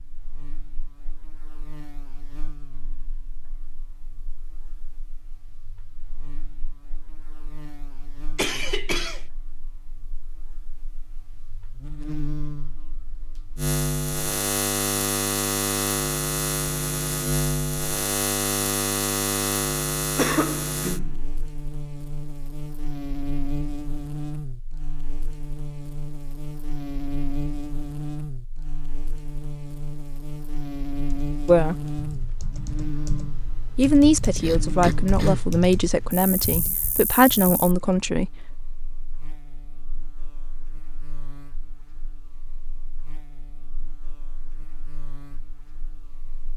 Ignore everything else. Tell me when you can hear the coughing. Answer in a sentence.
You can hear the coughing from 8.3 to 9.2 s, from 20.1 to 21.2 s and from 34.4 to 35.4 s.